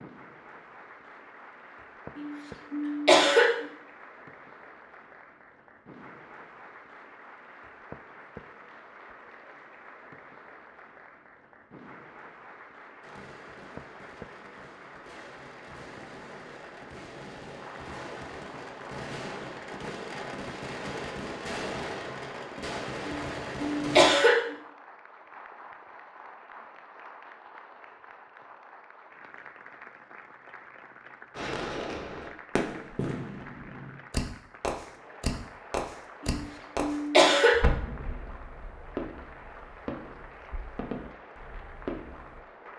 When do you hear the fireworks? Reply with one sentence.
You can hear the fireworks from 13.0 to 24.1 s and from 31.4 to 42.4 s.